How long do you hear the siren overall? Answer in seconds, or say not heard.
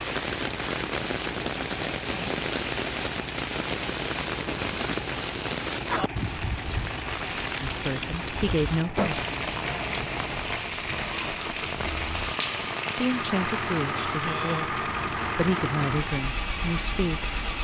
not heard.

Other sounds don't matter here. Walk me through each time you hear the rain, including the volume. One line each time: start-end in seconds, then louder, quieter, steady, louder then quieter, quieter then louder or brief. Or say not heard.
0.0-17.5 quieter.